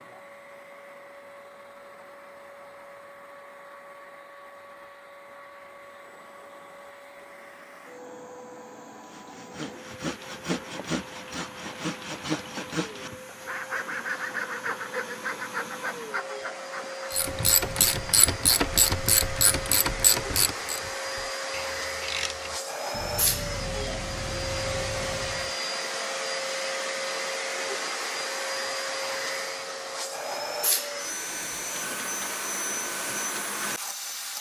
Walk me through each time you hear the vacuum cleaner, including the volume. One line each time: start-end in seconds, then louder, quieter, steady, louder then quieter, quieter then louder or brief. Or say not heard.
0.0-34.3 louder.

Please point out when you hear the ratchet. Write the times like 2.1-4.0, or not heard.
17.1-25.6.